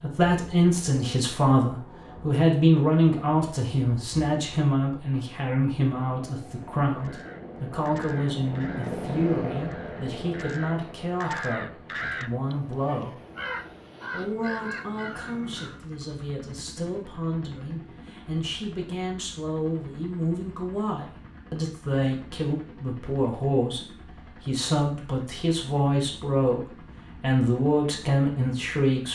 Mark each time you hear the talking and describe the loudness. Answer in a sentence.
You can hear the talking from 0.0 to 13.2 s, getting quieter; from 14.1 to 23.8 s, getting louder; briefly from 24.4 to 26.6 s; and briefly from 27.2 to 29.0 s.